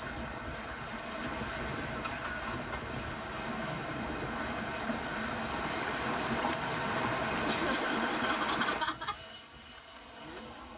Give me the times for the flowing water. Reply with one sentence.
The flowing water can be heard from 0.0 to 8.8 s.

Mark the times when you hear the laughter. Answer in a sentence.
The laughter can be heard from 7.4 to 9.2 s.